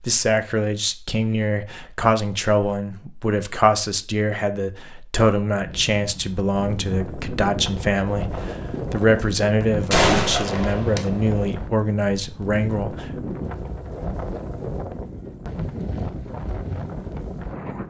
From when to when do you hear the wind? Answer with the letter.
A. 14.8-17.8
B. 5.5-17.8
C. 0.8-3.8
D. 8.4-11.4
B.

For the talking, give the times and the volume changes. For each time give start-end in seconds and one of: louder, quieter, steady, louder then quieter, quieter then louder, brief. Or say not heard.
0.0-13.1 steady.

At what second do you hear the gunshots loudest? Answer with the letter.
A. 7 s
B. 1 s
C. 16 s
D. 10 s
D.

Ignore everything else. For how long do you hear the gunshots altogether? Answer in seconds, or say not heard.
3 s.